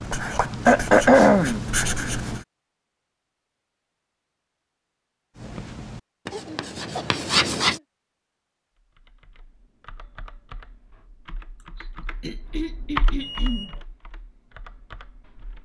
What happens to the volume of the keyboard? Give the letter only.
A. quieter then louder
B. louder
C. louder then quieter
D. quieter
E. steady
C.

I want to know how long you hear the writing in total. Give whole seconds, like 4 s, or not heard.
5 s.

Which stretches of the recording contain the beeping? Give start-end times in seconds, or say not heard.
13.2-13.8.